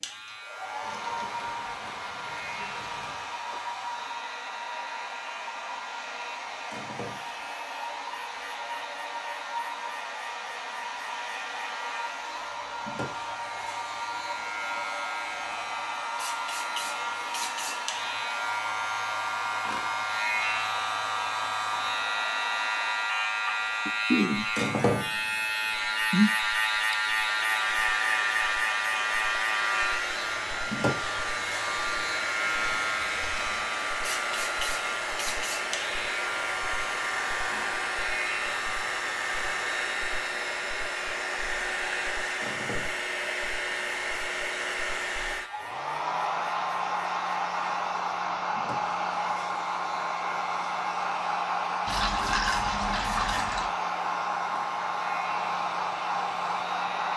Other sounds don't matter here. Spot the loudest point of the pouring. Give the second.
52 s.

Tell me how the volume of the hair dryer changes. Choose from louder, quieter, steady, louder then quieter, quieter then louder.
louder.